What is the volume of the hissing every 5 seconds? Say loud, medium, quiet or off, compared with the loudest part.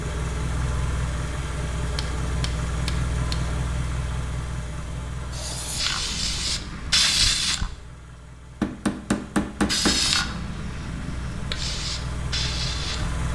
off, loud, medium.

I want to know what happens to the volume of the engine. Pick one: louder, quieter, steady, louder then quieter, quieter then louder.
quieter then louder.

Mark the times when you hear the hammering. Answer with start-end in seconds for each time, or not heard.
1.9-3.5, 8.6-10.1.